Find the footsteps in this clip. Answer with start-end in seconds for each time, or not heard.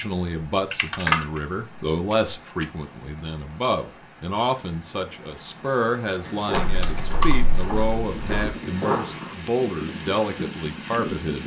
6.2-9.3.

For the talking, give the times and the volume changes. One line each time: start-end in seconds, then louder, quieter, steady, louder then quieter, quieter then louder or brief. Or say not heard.
0.0-11.4 steady.